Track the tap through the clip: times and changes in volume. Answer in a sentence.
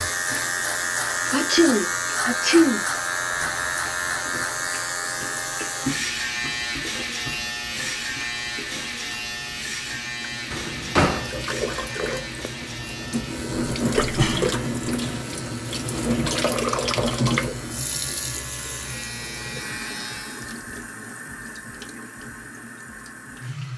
The tap can be heard from 0.1 to 23.7 s, getting louder then quieter.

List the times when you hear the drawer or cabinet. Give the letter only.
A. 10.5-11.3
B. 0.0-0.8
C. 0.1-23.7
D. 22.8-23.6
A.